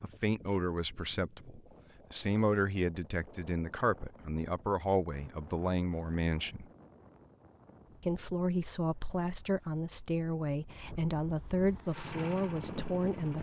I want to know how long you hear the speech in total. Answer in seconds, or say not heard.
12 s.